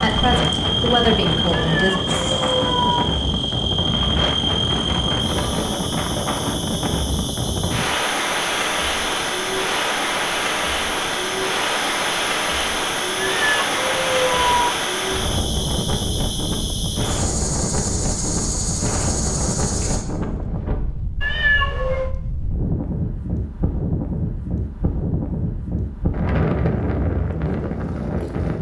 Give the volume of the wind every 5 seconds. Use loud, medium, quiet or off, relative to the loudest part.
loud, loud, loud, loud, medium, loud.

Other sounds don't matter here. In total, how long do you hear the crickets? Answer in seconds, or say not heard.
20 s.